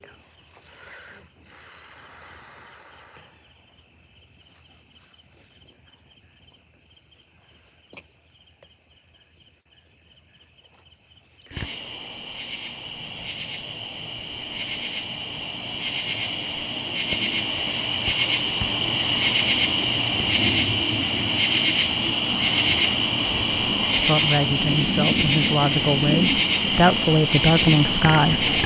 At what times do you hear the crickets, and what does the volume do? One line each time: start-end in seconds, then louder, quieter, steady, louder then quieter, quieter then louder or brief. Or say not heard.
0.0-28.6 louder.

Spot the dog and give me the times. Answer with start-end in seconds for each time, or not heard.
not heard.